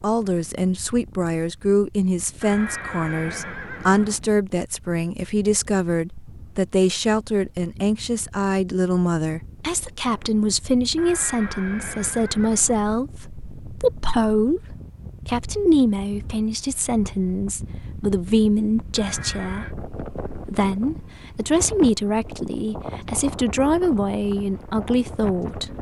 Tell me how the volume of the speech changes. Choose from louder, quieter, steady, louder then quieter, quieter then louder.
steady.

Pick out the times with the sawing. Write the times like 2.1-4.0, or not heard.
not heard.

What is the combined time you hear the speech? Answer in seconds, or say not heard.
26 s.